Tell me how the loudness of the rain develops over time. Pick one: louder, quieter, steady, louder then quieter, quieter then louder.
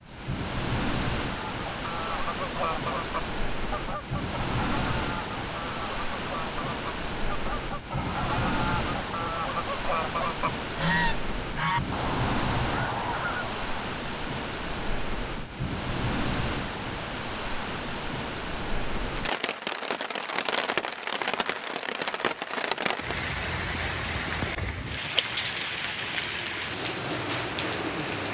steady.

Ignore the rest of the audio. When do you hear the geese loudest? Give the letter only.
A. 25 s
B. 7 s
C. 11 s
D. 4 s
C.